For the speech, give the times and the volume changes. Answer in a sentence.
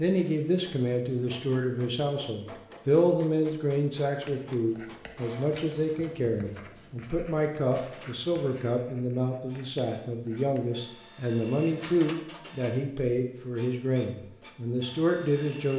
The speech can be heard from 0.0 to 15.7 s, at a steady volume.